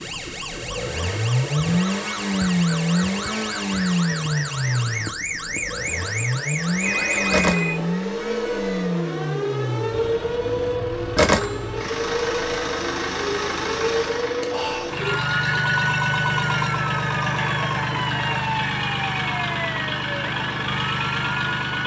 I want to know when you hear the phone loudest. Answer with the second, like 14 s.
7 s.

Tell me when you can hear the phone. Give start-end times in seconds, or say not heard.
6.8-7.8, 15.0-15.7.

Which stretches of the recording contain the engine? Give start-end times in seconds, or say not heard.
0.0-21.8.